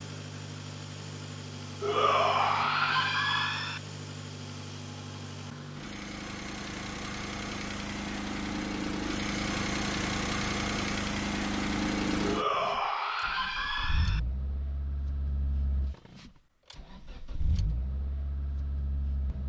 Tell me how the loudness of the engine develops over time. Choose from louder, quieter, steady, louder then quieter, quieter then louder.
louder then quieter.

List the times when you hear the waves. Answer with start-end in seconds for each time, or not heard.
not heard.